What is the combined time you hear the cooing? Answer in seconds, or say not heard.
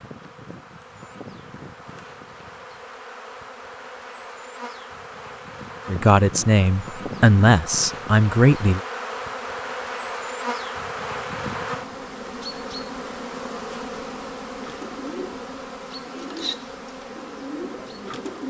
4 s.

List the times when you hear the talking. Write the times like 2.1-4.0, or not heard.
5.8-8.8.